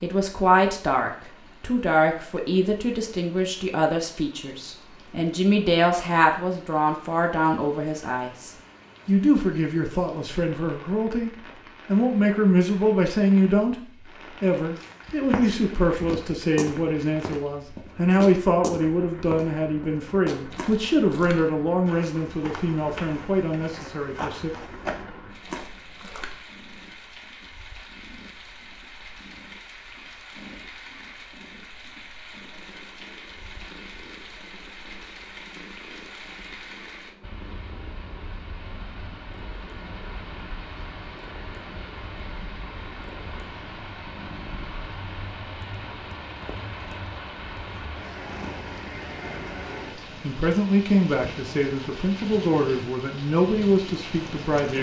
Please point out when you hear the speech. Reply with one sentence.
You can hear the speech from 0.0 to 24.5 s and from 50.2 to 54.7 s.